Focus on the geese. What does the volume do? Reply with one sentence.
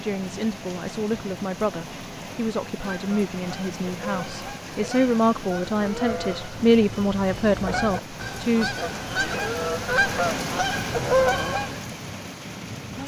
The loudness of the geese goes up.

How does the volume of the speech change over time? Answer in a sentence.
The loudness of the speech goes up.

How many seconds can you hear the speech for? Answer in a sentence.
You can hear the speech for 9 seconds altogether.